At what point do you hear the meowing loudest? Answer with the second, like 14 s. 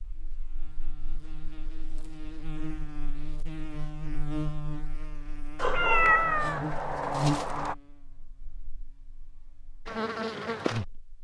6 s.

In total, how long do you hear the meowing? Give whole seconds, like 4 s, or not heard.
2 s.